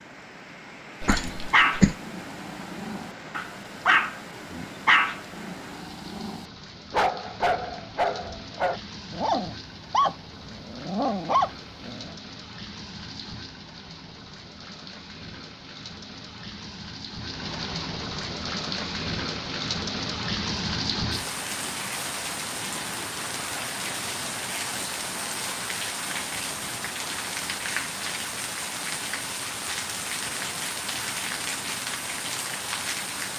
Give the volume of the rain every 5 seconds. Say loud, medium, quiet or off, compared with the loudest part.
medium, medium, medium, loud, loud, loud, loud.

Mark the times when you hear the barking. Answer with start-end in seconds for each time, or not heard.
1.1-12.1.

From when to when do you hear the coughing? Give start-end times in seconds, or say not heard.
1.0-1.9.